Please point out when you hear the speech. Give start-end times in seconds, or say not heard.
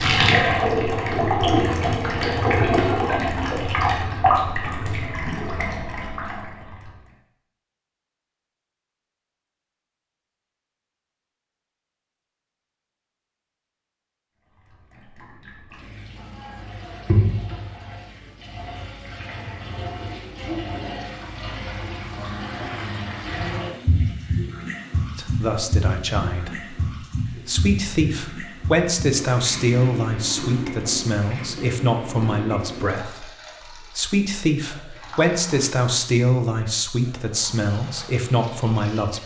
25.1-33.2, 33.9-39.2.